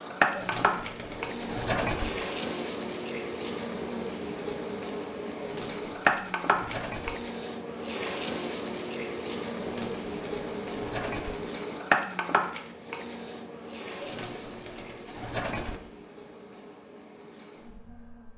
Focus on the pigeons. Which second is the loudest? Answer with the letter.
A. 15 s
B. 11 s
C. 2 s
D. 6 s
C.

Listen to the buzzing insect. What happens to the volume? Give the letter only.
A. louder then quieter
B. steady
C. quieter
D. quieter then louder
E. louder
C.